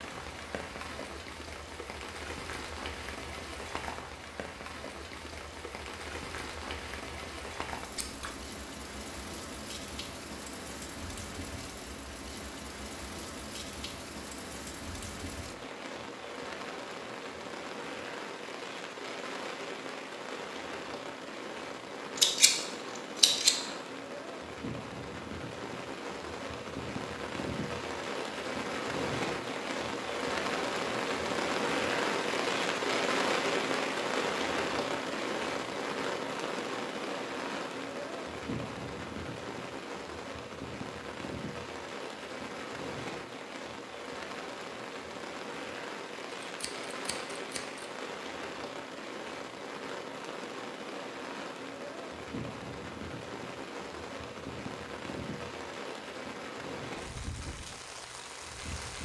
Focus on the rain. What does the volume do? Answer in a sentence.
The loudness of the rain goes up, then down.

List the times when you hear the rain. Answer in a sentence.
You can hear the rain from 0.0 to 59.0 s.